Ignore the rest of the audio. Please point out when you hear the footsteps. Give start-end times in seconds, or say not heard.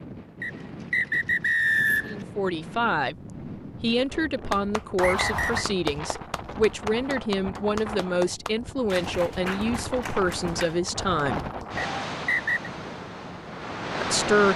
not heard.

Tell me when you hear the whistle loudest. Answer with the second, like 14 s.
2 s.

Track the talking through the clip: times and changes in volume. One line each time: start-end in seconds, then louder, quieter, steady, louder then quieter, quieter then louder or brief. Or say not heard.
2.0-3.1 brief
3.8-11.4 steady
14.0-14.5 brief.